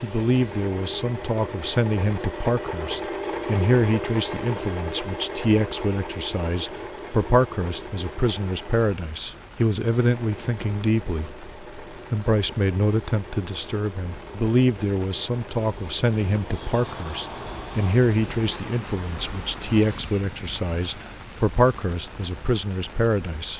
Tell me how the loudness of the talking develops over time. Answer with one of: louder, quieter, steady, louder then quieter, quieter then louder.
steady.